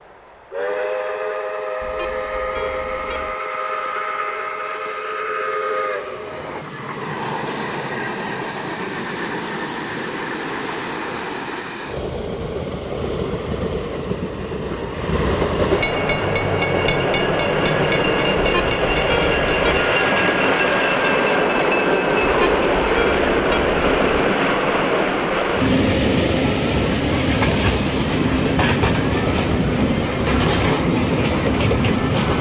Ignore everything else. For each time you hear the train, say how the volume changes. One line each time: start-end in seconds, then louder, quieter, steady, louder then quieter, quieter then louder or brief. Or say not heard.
0.0-32.3 louder.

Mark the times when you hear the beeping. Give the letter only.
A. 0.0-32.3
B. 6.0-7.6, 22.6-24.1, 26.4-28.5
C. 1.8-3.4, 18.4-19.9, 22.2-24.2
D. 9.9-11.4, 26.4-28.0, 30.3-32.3
C.